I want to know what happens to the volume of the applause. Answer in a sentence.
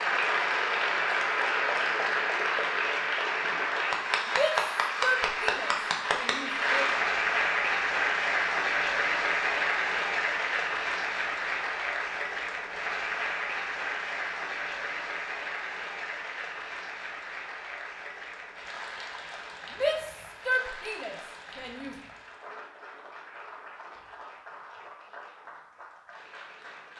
The loudness of the applause goes down.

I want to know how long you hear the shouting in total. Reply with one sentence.
The shouting can be heard for 5 seconds in total.